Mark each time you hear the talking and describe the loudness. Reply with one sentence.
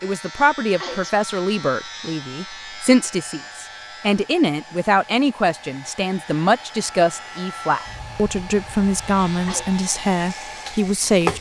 You can hear the talking from 0.0 to 11.3 s, at a steady volume.